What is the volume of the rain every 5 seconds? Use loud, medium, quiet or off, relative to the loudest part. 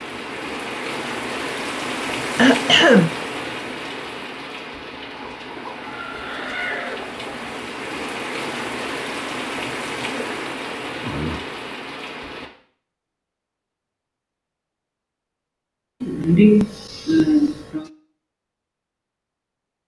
loud, loud, loud, off.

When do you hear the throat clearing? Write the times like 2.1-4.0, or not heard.
2.4-3.1, 11.0-11.4, 16.0-17.9.